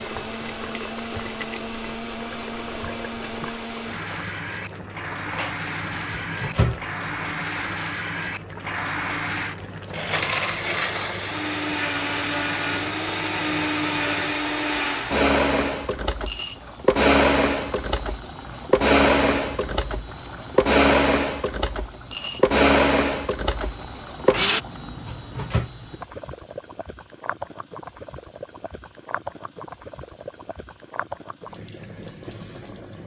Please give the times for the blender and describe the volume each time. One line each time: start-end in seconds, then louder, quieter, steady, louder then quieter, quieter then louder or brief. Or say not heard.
0.0-24.6 louder.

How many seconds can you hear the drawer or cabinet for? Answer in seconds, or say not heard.
3 s.